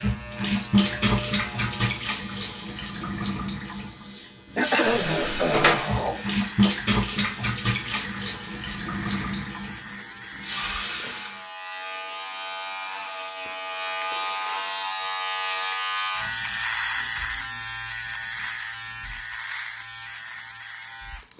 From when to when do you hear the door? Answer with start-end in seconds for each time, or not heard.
5.0-5.8.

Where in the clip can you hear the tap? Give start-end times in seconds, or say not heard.
0.0-11.4.